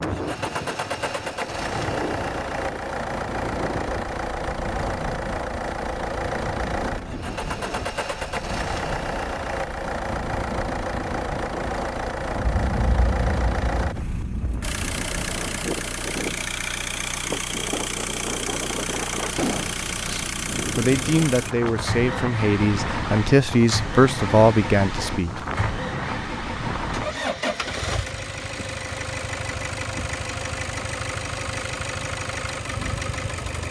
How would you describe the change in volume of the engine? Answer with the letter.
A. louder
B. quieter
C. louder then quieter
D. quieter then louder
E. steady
E.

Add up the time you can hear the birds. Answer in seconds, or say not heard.
not heard.